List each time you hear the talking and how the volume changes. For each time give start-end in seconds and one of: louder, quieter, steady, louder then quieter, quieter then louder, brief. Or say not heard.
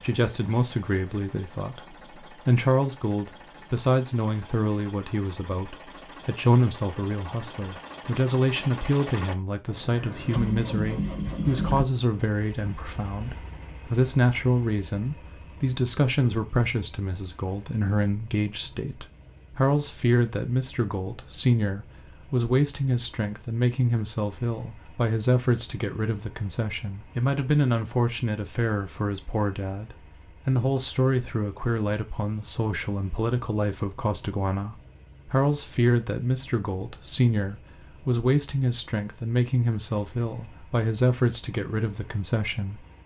0.0-42.9 steady.